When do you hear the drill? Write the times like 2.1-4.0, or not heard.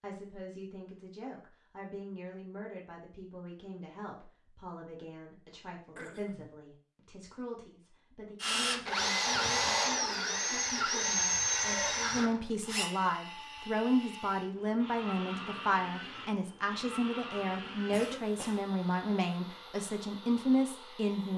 8.4-21.3.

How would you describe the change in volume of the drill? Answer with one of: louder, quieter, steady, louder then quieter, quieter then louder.
quieter.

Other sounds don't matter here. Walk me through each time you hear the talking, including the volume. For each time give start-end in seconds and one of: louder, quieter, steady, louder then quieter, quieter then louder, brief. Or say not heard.
0.0-21.3 louder.